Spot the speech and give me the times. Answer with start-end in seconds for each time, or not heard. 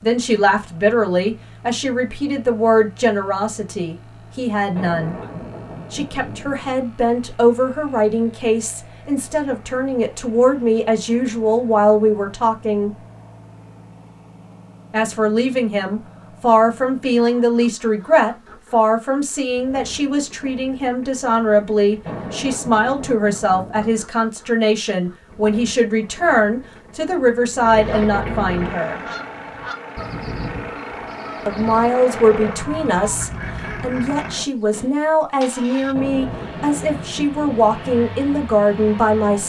0.0-5.2, 5.9-13.0, 14.9-29.0, 31.4-39.4.